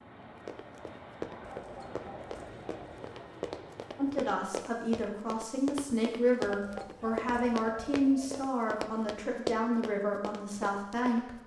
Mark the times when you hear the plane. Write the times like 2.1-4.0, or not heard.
0.0-4.3.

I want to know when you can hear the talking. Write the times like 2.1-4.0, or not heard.
4.0-11.4.